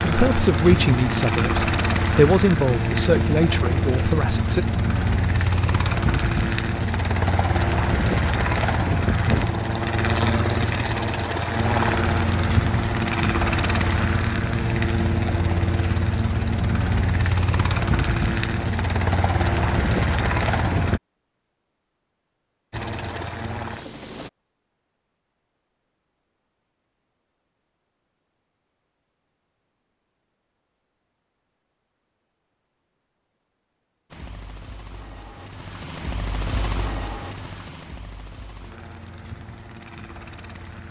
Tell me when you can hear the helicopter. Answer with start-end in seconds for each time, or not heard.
0.0-21.0, 22.7-24.3, 34.1-40.8.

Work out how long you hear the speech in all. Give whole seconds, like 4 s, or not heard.
5 s.